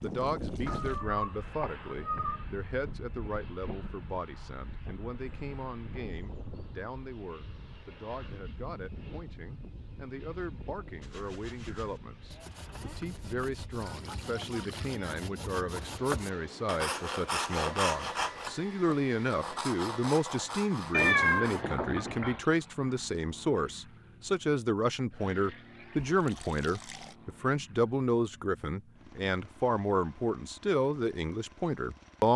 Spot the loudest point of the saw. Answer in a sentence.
The loudest moment of the saw is at 18 seconds.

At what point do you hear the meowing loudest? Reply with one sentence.
The loudest moment of the meowing is at 21 seconds.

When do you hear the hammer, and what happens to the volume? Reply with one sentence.
The hammer can't be heard in this clip.